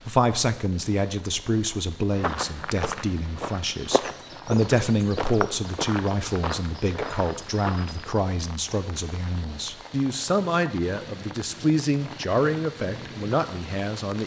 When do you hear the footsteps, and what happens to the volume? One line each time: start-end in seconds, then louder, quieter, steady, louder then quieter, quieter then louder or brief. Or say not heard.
2.1-8.2 steady.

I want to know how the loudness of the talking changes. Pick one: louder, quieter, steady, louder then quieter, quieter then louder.
steady.